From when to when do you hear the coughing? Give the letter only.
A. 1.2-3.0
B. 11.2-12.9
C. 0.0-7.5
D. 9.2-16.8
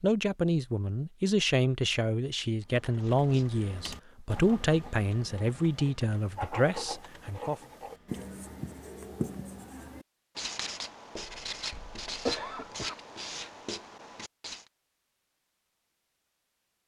B.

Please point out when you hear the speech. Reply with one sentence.
The speech can be heard from 0.0 to 7.5 s.